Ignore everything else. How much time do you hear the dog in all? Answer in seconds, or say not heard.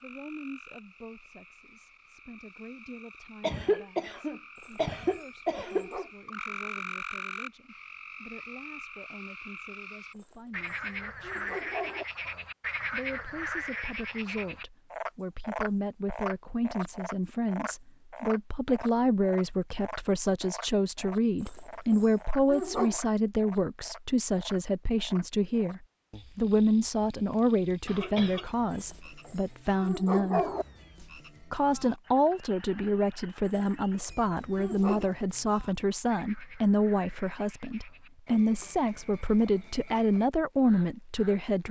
9 s.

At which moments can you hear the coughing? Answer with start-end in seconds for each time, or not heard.
3.4-5.8, 27.9-28.4.